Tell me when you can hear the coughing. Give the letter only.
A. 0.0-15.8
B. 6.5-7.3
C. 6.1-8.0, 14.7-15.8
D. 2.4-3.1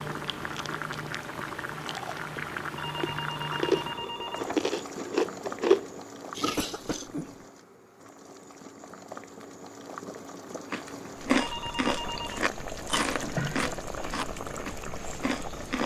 B.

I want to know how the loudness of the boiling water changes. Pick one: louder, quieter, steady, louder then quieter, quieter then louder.
quieter then louder.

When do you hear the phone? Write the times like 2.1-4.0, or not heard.
2.8-4.7, 11.3-12.4.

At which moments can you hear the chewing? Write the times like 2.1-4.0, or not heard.
0.1-7.0, 10.7-15.8.